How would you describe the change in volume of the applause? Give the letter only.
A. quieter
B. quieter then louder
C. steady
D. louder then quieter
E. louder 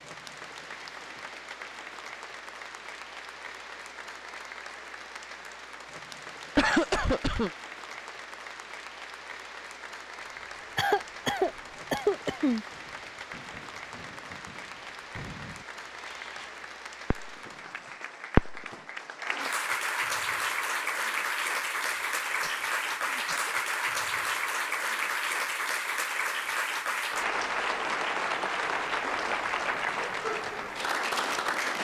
E.